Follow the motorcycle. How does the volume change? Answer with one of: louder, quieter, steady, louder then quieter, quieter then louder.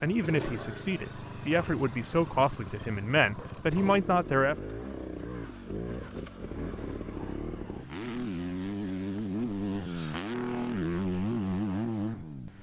louder.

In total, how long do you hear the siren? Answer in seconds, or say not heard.
not heard.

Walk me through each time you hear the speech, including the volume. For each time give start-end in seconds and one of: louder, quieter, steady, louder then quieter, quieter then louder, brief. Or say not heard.
0.0-4.5 louder.